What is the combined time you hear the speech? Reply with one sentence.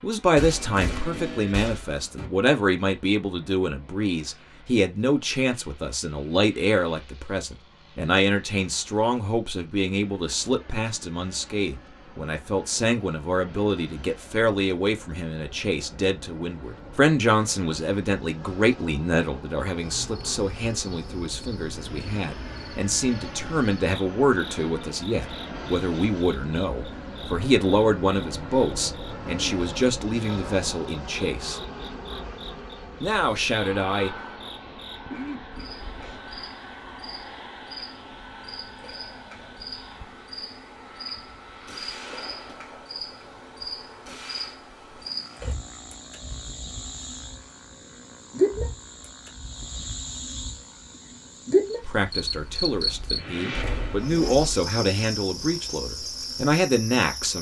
The speech can be heard for 38 seconds in total.